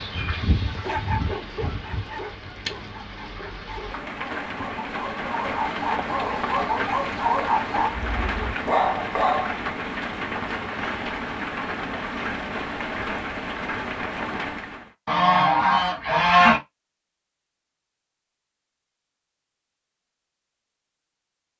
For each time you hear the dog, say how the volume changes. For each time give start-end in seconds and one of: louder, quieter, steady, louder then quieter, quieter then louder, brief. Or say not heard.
0.7-9.6 quieter then louder.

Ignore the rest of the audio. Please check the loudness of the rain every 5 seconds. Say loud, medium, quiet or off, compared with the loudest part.
medium, loud, loud, off, off.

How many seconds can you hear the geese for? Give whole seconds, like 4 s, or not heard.
4 s.